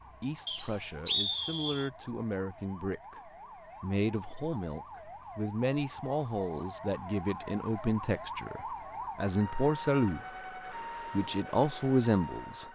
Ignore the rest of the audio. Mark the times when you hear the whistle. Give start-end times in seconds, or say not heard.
0.5-1.9.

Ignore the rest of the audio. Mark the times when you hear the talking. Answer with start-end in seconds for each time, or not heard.
0.2-10.2, 11.1-12.7.